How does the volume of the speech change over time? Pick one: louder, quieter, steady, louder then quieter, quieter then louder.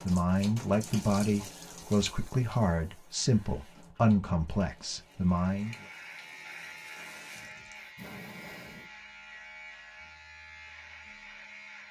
steady.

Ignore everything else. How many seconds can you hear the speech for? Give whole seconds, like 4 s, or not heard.
6 s.